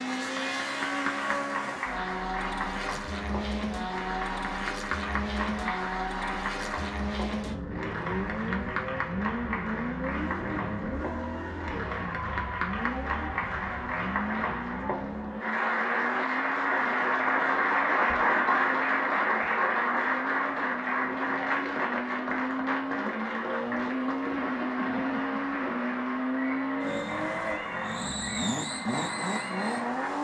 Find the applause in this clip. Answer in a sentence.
You can hear the applause from 0.0 to 30.1 s.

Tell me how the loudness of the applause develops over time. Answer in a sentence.
The loudness of the applause goes up, then down.